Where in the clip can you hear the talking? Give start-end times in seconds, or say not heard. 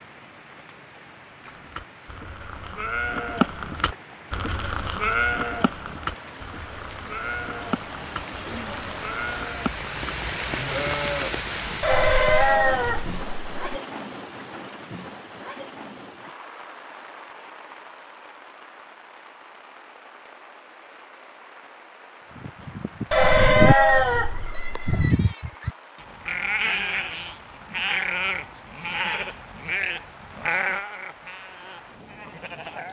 not heard.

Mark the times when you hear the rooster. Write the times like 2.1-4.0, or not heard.
11.8-13.8, 23.1-25.1.